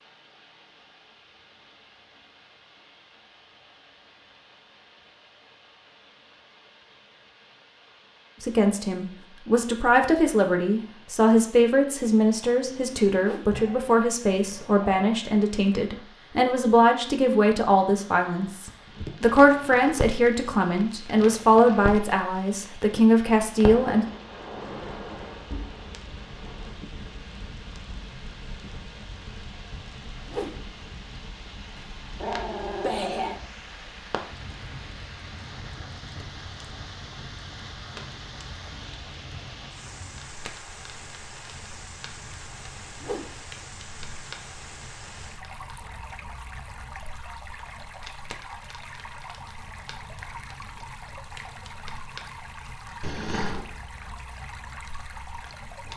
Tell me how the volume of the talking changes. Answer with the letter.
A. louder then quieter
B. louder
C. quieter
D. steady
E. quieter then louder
D.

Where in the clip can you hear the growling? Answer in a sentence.
The growling can be heard from 12.7 to 15.2 s, from 32.2 to 33.4 s and from 53.0 to 53.7 s.